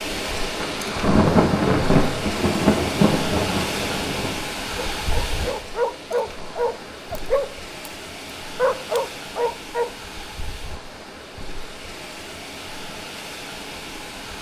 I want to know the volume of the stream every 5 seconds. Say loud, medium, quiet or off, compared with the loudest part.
loud, medium, medium.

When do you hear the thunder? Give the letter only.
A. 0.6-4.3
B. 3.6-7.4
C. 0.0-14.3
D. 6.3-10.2
A.